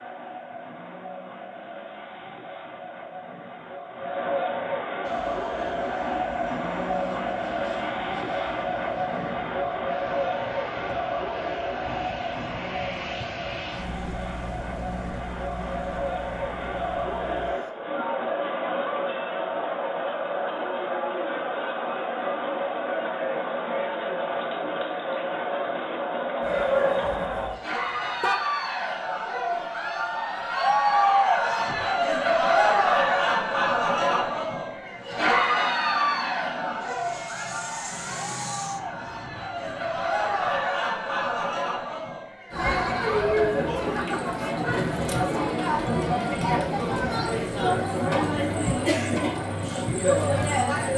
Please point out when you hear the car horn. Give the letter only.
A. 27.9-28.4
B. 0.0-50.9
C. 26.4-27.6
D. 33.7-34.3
A.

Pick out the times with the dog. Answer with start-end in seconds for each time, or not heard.
26.4-27.6.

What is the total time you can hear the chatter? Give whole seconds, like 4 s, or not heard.
51 s.